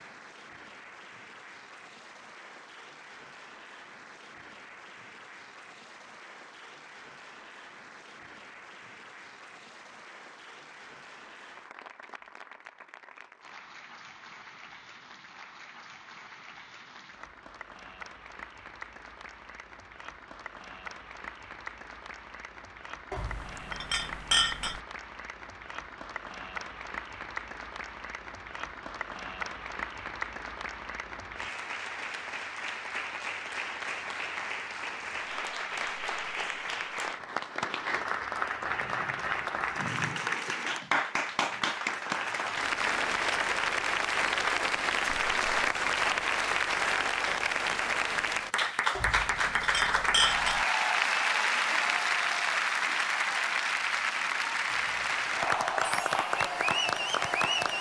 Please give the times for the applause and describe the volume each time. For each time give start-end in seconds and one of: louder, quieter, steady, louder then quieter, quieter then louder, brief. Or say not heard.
0.0-57.7 louder.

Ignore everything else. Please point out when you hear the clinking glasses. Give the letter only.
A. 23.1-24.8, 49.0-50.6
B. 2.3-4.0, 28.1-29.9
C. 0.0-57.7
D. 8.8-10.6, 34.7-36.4
A.